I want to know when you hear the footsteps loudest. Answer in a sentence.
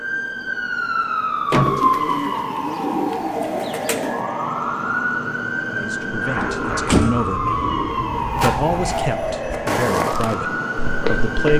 The volume of the footsteps peaks at 10 seconds.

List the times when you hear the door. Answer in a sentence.
The door can be heard from 1.5 to 2.1 s and from 6.4 to 7.2 s.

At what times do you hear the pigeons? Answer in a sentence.
You can hear the pigeons from 1.6 to 4.2 s and from 6.4 to 8.2 s.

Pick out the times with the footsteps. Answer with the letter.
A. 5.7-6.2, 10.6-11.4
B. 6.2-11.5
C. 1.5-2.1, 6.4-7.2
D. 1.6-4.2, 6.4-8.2
B.